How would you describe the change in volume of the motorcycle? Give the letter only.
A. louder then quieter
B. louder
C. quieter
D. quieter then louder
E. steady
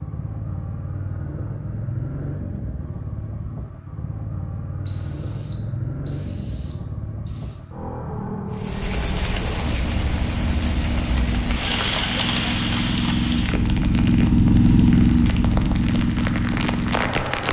B.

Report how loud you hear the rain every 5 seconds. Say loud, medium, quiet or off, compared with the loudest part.
off, loud, loud, loud.